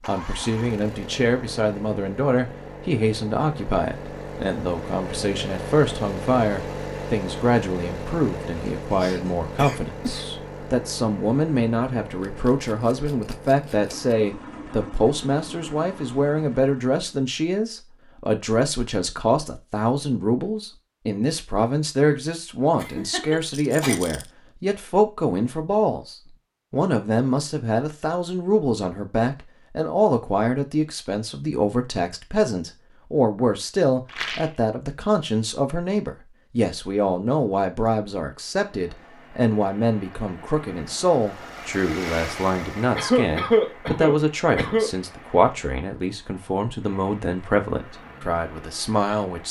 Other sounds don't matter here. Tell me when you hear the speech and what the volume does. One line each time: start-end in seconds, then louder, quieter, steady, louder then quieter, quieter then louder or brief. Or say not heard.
0.1-49.4 steady.